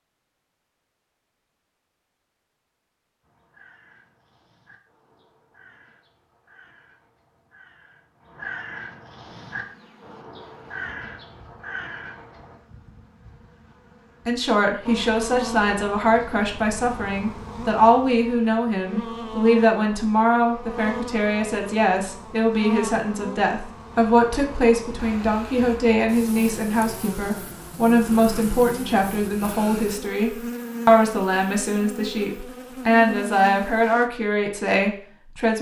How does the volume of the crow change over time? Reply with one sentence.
The volume of the crow goes up.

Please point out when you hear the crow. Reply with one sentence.
The crow can be heard from 3.2 to 12.6 s.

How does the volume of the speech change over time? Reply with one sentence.
The volume of the speech stays about the same.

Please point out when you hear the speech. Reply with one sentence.
The speech can be heard from 14.2 to 35.5 s.